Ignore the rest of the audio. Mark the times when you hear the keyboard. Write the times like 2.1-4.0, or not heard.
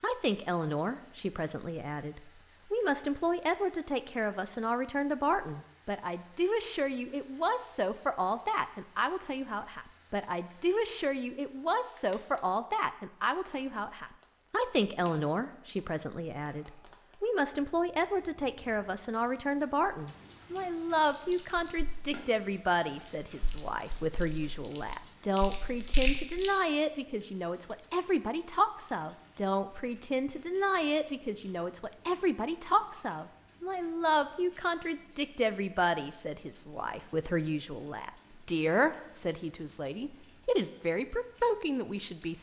not heard.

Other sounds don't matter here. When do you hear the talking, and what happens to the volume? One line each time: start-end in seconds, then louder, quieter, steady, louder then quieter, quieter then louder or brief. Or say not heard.
0.0-42.3 steady.